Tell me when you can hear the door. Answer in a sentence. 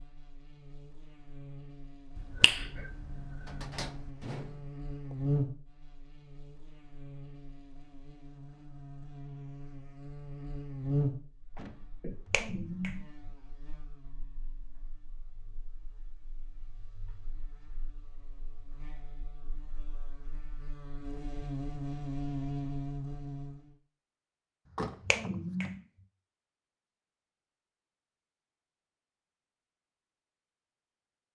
You can hear the door from 3.5 to 5.2 s, from 11.6 to 12.4 s and from 24.6 to 25.8 s.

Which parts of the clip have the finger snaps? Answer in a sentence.
You can hear the finger snaps from 2.1 to 4.1 s, from 12.0 to 13.1 s and from 24.8 to 25.8 s.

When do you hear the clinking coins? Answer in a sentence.
The clinking coins can't be heard in this clip.